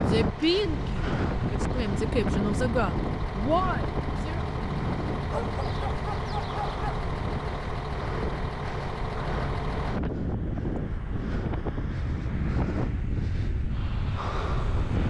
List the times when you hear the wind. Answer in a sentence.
The wind can be heard from 0.0 to 15.0 s.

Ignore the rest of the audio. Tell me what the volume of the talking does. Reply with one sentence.
The loudness of the talking goes down, then up.